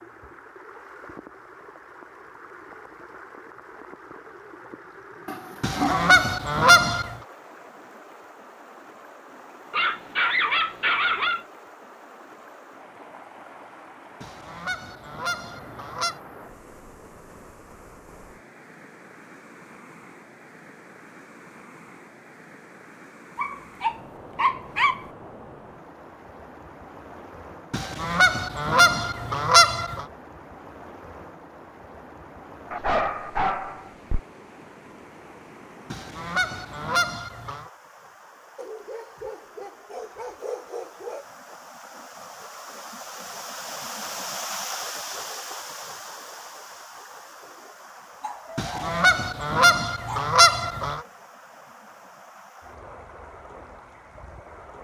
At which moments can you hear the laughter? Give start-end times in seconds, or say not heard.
not heard.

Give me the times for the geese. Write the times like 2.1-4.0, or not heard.
5.6-7.2, 14.2-16.1, 27.7-30.1, 35.9-37.7, 48.5-51.0.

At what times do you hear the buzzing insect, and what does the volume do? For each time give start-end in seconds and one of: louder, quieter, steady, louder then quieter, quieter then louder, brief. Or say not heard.
not heard.